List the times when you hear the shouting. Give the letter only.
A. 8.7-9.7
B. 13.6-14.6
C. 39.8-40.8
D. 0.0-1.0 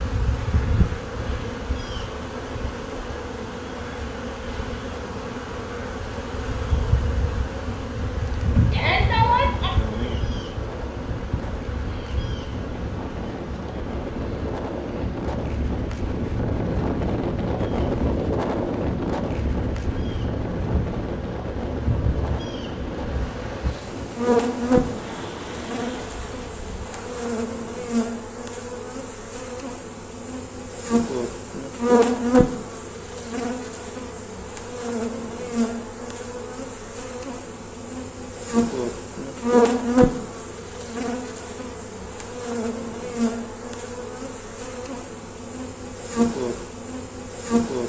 A.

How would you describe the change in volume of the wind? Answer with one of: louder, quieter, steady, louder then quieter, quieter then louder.
louder then quieter.